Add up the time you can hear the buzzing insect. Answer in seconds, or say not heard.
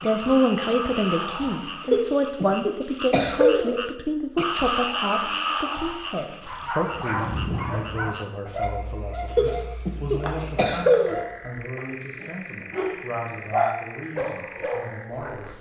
not heard.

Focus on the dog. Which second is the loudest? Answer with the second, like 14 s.
14 s.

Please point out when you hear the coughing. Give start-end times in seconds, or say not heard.
1.8-3.9, 9.3-11.2.